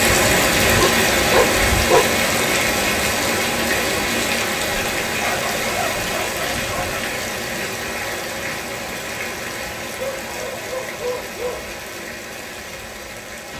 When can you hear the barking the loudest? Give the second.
2 s.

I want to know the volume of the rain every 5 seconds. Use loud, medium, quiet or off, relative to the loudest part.
loud, medium, quiet.